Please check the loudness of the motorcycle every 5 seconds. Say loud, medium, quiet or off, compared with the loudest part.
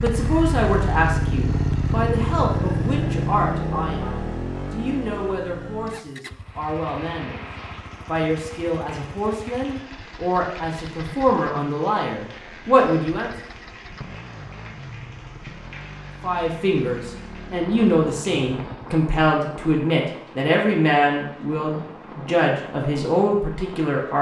loud, quiet, quiet, quiet, off.